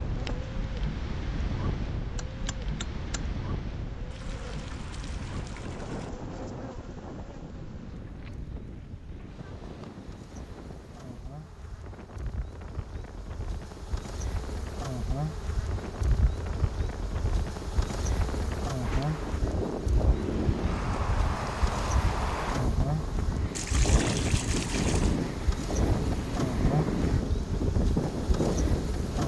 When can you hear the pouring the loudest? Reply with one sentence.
The loudest moment of the pouring is at 24 seconds.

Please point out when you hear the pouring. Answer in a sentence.
The pouring can be heard from 4.1 to 6.1 s and from 23.6 to 25.1 s.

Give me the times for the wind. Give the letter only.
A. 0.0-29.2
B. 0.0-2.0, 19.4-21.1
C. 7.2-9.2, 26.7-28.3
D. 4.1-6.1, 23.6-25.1
A.